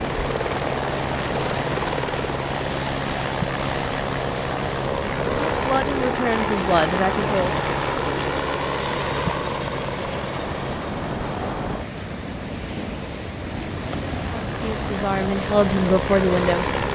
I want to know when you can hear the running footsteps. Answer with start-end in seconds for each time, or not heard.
not heard.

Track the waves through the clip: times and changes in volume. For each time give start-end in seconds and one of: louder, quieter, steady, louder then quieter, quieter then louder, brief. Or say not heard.
0.0-16.9 steady.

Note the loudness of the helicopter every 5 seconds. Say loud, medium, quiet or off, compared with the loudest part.
loud, loud, medium, loud.